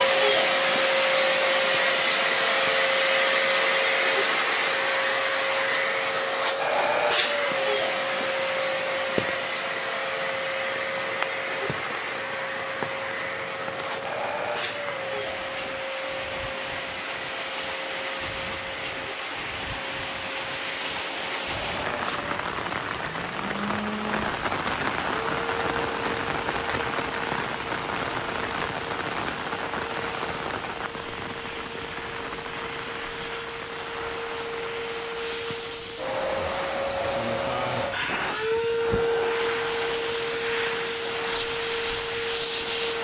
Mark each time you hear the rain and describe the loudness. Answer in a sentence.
The rain can be heard from 0.0 to 42.9 s, getting louder then quieter.